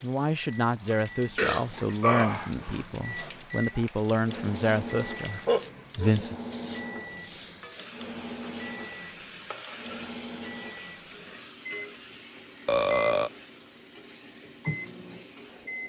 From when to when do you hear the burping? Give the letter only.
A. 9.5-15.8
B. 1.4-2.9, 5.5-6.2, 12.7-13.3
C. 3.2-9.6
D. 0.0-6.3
B.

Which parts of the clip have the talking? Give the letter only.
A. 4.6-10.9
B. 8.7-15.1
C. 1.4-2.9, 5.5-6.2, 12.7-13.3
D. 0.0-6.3
D.